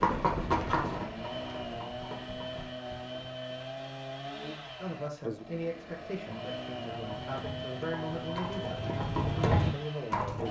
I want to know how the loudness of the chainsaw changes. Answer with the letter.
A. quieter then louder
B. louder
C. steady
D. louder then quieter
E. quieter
C.